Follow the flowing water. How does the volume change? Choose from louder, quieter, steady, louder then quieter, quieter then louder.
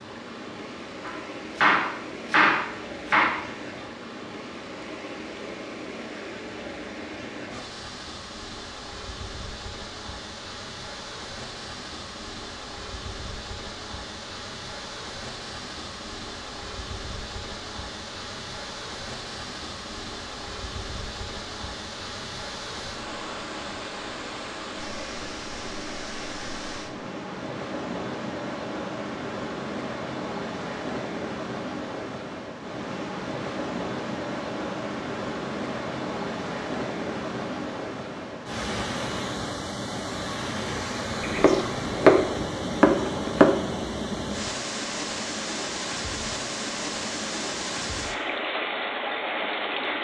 louder.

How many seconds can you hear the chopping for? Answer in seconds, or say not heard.
5 s.